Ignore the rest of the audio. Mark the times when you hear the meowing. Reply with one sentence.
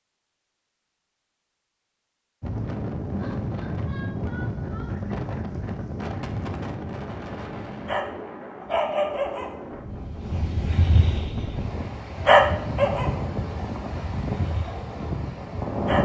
You can't hear the meowing here.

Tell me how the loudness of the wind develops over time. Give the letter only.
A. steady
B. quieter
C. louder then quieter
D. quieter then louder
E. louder
D.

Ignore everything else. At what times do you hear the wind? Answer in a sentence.
The wind can be heard from 2.4 to 16.0 s.